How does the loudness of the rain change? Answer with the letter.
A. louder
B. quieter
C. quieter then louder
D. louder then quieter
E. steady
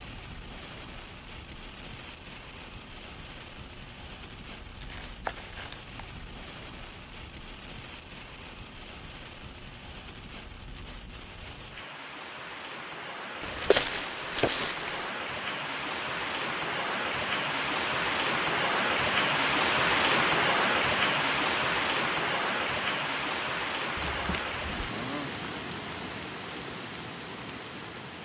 D.